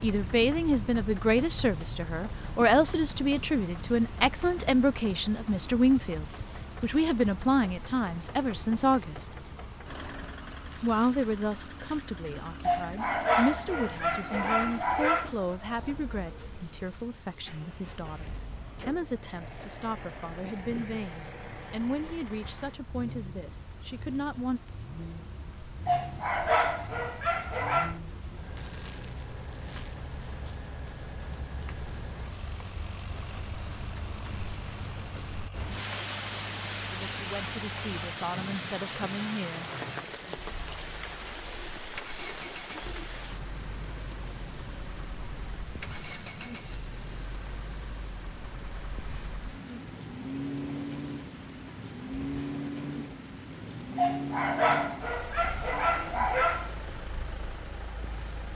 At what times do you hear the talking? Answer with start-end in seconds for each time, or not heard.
0.0-9.4, 10.8-24.6, 36.9-39.6.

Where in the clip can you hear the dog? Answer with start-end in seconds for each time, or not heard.
12.7-15.3, 25.9-27.9, 54.0-56.8.